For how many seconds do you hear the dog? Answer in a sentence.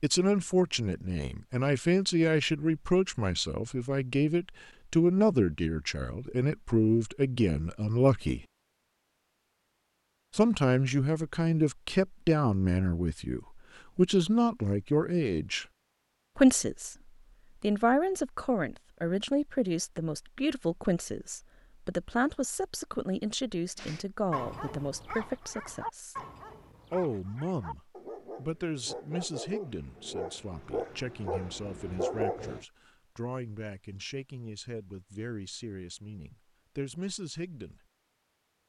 You can hear the dog for 9 seconds altogether.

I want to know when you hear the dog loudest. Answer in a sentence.
The loudest moment of the dog is at 32 seconds.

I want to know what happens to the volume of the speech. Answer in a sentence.
The volume of the speech goes down.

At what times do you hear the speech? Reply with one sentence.
You can hear the speech from 0.0 to 8.4 s, from 10.3 to 15.7 s, from 16.4 to 26.1 s and from 26.9 to 37.8 s.